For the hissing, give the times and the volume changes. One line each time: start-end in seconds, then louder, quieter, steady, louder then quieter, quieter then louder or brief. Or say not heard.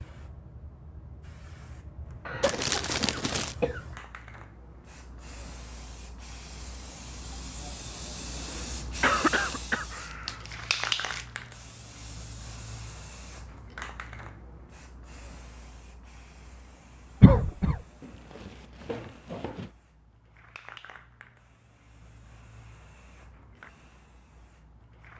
0.0-25.1 louder then quieter.